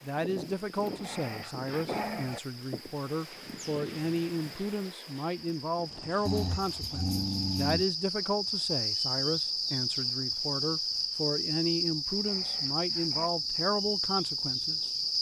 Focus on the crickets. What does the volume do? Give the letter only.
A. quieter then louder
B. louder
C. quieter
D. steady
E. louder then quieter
B.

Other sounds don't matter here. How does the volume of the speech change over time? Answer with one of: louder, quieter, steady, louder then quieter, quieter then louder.
steady.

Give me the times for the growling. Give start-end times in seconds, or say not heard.
0.8-2.4, 6.2-7.8, 12.1-13.3.